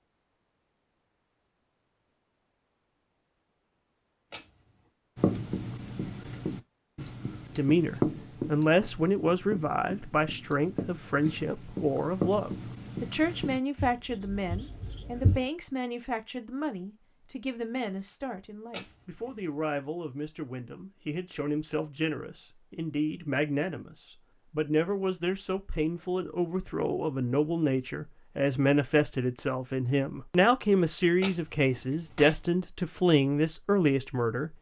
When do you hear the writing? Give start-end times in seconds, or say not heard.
5.2-15.4.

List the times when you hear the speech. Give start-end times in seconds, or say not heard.
7.5-34.5.